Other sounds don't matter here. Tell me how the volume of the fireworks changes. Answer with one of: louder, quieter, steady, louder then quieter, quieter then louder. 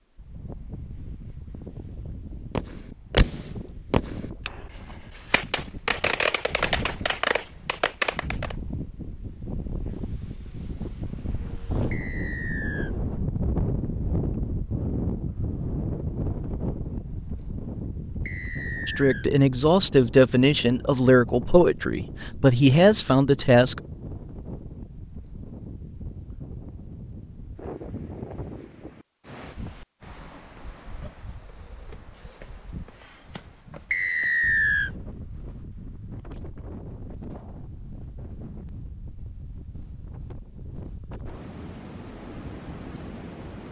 quieter then louder.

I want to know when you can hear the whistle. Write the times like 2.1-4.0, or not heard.
11.9-12.9, 18.2-19.2, 33.9-34.9.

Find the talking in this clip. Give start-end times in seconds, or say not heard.
18.9-23.8.